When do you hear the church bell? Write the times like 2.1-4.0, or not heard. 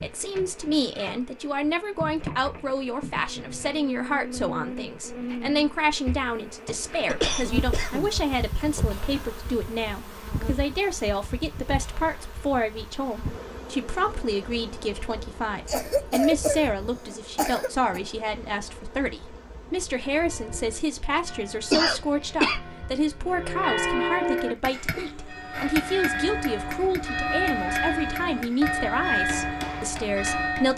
20.1-30.7.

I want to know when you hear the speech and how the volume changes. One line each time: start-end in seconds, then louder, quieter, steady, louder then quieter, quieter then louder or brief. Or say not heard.
0.0-30.7 steady.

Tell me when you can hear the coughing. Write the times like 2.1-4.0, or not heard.
7.0-8.1, 15.7-18.0, 21.7-22.6.